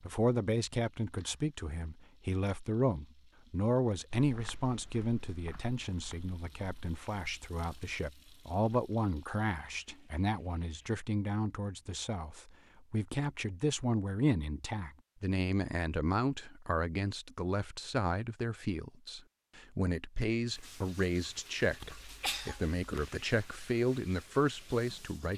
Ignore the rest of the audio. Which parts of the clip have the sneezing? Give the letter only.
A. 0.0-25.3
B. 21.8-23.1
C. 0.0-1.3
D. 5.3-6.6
B.